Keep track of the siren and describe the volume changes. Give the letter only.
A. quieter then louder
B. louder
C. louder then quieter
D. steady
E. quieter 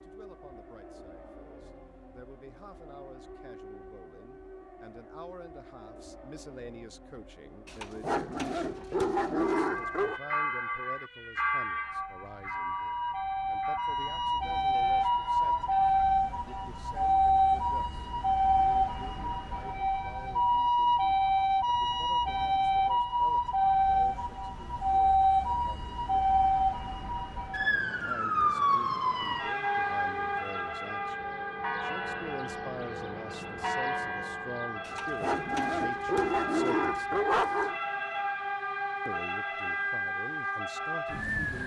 C.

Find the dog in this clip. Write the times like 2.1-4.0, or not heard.
7.7-10.2, 34.9-37.8.